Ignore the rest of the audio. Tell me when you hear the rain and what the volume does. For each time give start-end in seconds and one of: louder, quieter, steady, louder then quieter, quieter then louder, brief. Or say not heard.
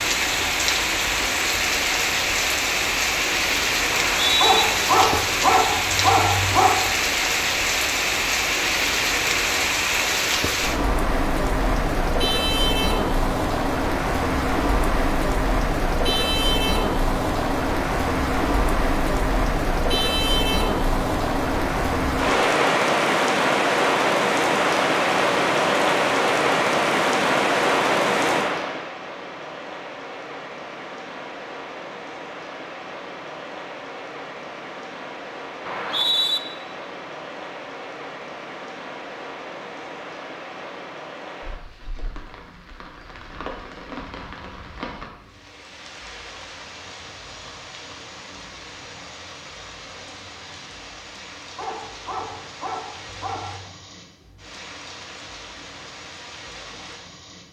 0.0-57.4 quieter.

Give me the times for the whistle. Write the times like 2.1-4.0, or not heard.
3.9-4.7, 35.6-36.4.